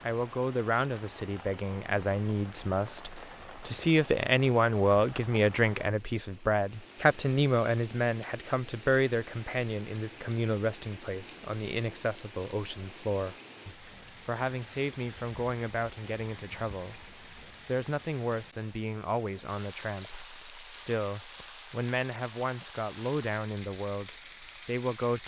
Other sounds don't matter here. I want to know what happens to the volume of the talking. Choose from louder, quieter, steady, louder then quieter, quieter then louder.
quieter.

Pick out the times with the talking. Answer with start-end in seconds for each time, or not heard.
0.0-25.2.